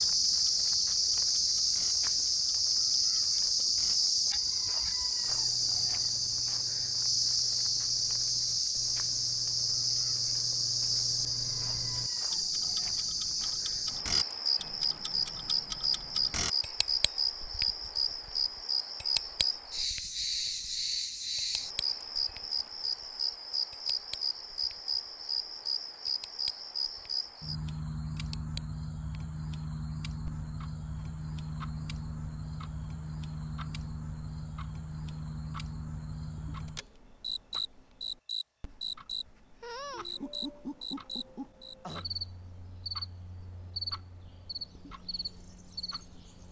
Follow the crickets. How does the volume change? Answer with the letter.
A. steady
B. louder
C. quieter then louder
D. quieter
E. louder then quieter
D.